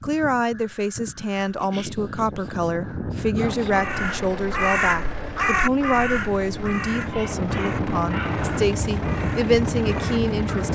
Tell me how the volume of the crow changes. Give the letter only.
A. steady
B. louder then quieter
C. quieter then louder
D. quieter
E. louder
B.